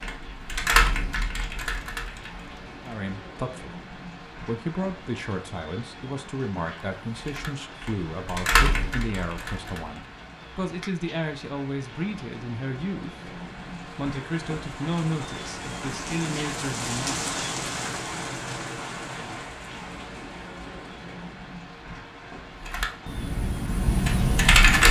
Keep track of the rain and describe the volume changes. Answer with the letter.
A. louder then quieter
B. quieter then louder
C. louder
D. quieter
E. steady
A.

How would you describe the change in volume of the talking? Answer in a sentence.
The volume of the talking stays about the same.